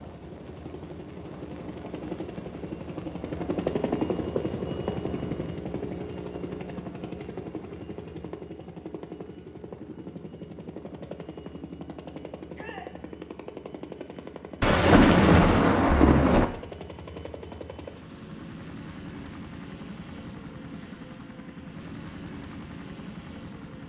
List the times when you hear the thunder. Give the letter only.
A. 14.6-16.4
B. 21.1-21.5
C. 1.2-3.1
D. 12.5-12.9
A.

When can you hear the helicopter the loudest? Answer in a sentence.
The loudest moment of the helicopter is at 4 seconds.